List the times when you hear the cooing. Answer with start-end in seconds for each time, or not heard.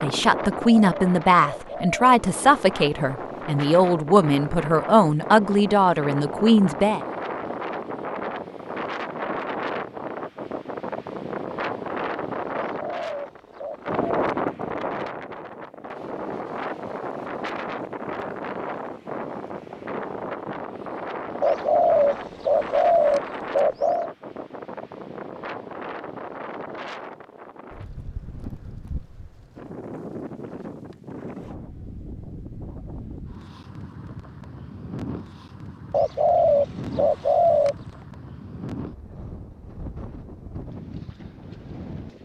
0.6-2.1, 12.6-14.3, 21.4-24.1, 35.9-37.8.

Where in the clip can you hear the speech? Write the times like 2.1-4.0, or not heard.
0.0-7.0.